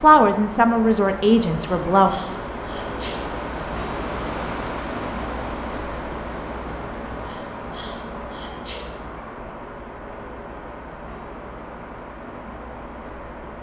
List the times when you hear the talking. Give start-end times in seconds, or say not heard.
0.0-2.1.